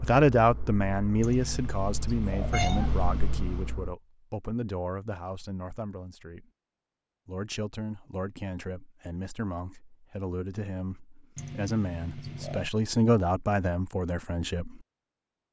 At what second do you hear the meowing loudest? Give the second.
3 s.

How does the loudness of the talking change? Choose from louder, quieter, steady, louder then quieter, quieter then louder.
quieter then louder.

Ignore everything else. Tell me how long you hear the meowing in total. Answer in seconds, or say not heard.
4 s.